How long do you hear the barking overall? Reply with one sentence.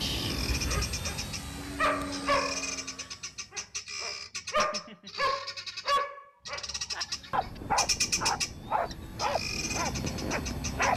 The barking can be heard for 11 seconds in total.